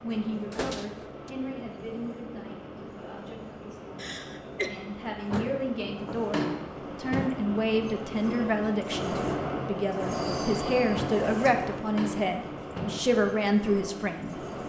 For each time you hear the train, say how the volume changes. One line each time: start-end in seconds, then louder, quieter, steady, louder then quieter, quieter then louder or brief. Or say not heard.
0.0-14.6 louder then quieter.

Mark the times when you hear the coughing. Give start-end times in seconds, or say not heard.
4.0-4.7.